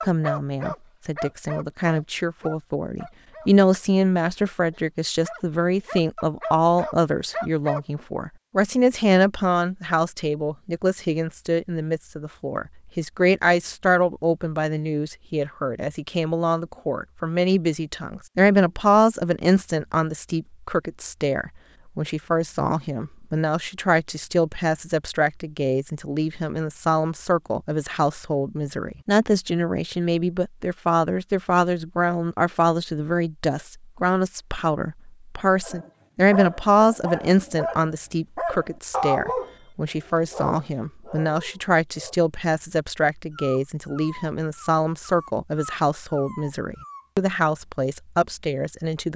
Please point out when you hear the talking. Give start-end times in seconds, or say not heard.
0.1-49.1.